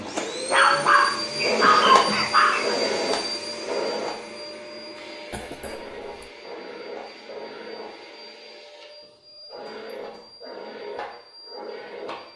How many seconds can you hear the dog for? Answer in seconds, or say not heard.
3 s.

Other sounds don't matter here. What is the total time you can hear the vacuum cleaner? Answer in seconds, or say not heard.
12 s.